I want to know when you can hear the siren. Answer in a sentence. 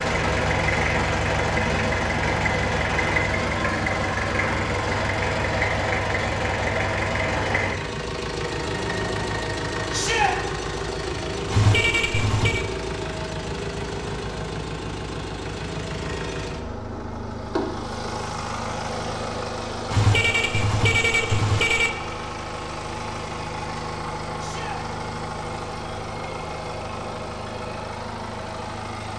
The siren can't be heard in this clip.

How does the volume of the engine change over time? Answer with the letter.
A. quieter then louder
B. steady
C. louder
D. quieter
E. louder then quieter
D.